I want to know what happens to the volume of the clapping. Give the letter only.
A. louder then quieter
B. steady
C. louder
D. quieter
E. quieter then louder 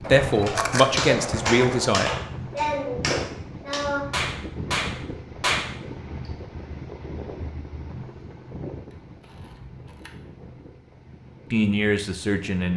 B.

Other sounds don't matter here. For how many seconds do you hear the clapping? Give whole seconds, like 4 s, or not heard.
6 s.